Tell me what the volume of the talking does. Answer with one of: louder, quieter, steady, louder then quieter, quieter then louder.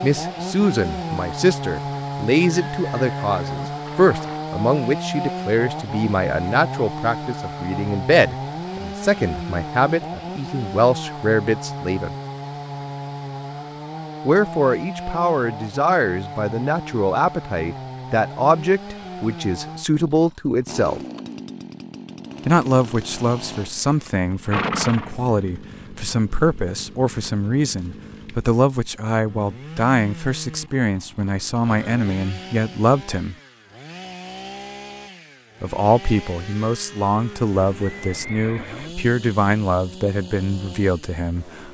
steady.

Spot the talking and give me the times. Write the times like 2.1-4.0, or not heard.
0.0-12.2, 14.2-21.0, 22.4-33.4, 35.6-41.6.